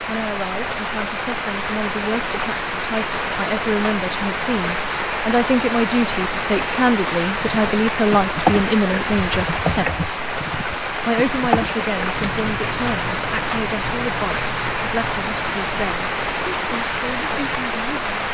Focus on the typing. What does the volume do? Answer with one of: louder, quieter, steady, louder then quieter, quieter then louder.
quieter.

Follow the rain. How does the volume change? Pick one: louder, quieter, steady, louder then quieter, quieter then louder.
steady.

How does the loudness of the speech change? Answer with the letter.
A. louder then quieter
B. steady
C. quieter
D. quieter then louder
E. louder
A.